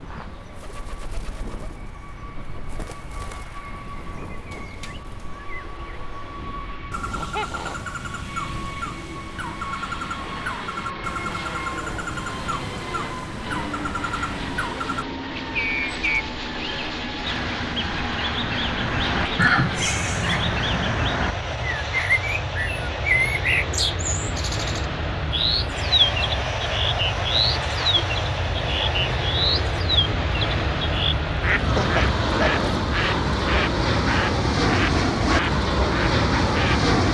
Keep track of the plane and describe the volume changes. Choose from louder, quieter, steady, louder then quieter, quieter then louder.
louder.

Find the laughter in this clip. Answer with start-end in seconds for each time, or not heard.
7.1-7.8, 19.4-20.9, 31.6-32.6.